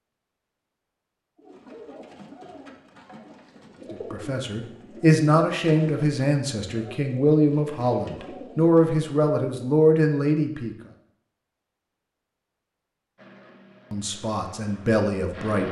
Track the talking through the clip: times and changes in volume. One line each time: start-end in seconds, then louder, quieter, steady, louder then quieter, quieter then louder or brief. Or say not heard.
3.9-10.8 steady
13.9-15.6 brief.